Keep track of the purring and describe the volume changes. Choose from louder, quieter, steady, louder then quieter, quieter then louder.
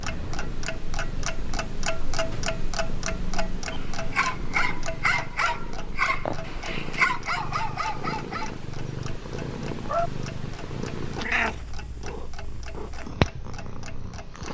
louder.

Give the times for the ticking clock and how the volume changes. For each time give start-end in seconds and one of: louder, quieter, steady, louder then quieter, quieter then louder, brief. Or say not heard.
0.0-14.4 quieter.